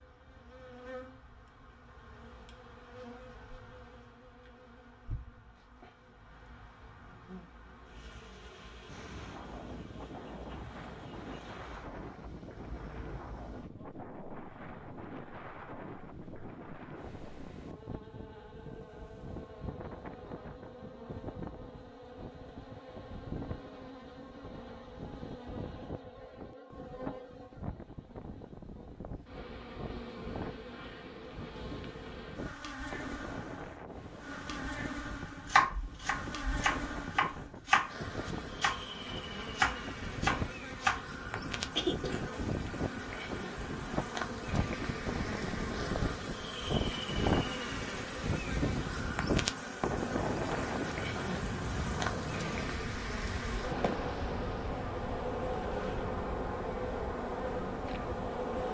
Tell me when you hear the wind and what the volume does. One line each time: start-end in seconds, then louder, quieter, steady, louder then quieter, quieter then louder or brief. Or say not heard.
8.8-58.5 louder.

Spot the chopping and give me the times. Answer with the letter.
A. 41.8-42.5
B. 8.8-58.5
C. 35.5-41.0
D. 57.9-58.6
C.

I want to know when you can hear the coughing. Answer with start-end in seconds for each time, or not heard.
41.8-42.5.